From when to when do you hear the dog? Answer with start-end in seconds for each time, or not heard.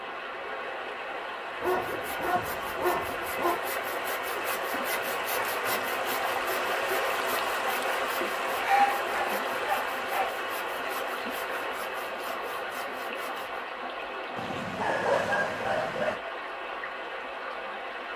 1.6-3.6, 8.6-10.3, 14.3-16.2.